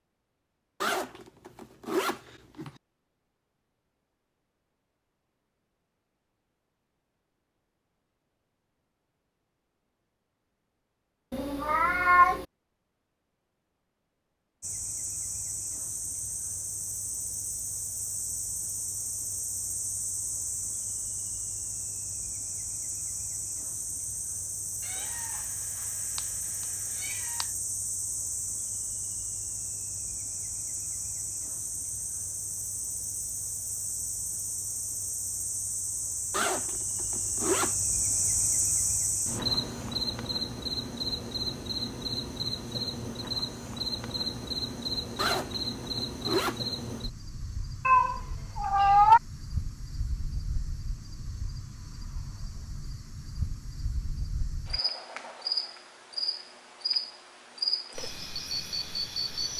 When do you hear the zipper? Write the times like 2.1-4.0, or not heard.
0.8-2.7, 36.3-37.8, 45.1-46.6.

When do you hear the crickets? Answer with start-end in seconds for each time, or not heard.
14.6-59.5.